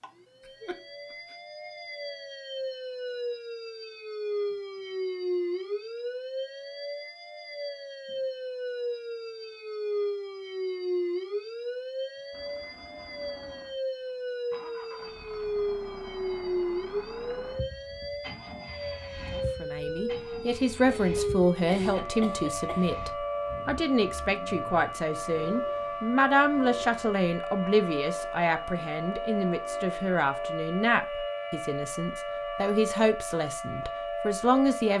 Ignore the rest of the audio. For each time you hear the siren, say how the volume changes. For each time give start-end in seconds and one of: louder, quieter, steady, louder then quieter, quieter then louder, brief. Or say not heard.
0.0-34.9 steady.